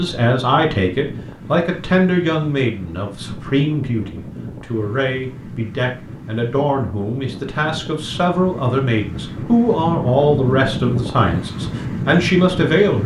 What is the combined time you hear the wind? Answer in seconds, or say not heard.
13 s.